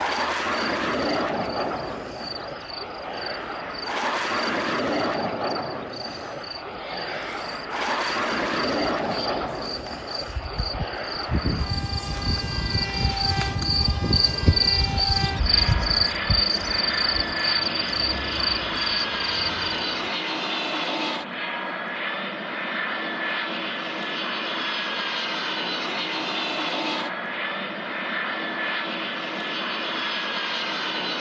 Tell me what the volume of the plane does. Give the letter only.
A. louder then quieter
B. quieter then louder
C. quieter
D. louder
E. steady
E.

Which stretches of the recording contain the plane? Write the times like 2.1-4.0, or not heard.
0.0-31.1.